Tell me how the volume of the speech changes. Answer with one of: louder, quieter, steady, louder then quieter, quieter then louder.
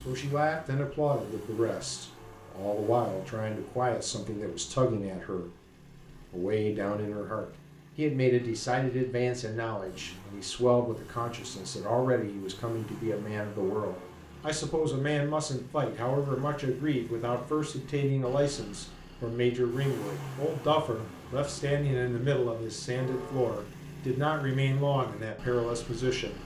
steady.